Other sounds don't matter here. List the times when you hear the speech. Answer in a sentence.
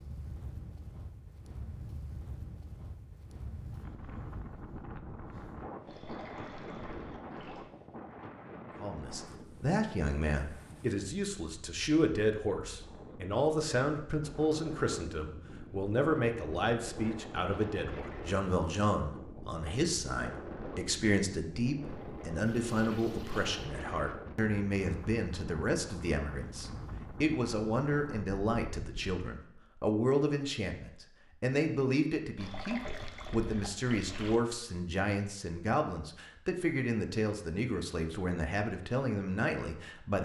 You can hear the speech from 8.8 to 40.1 s.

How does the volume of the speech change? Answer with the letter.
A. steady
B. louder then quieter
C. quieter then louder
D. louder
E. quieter
A.